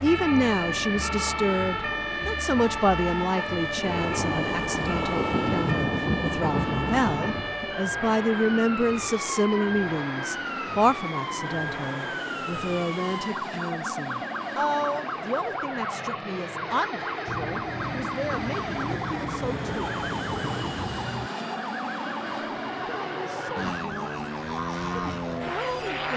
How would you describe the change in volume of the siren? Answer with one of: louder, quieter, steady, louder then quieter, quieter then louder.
quieter.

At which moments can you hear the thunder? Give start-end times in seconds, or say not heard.
3.8-7.5, 17.2-21.3.